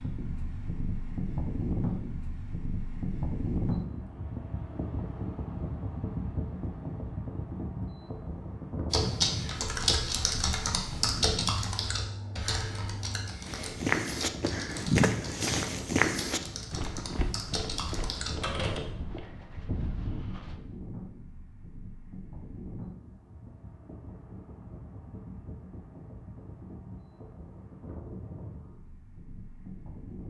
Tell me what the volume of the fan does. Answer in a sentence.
The loudness of the fan goes down.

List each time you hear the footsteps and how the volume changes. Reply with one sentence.
The footsteps can be heard from 13.4 to 20.6 s, getting quieter.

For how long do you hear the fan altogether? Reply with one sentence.
The fan can be heard for 30 seconds in total.